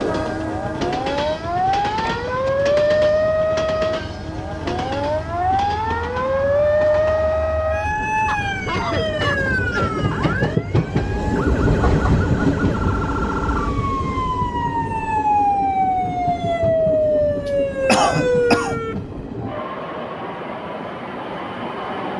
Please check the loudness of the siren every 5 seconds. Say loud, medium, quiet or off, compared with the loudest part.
loud, loud, medium, loud, off.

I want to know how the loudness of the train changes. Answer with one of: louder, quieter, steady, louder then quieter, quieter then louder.
louder then quieter.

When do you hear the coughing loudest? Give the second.
18 s.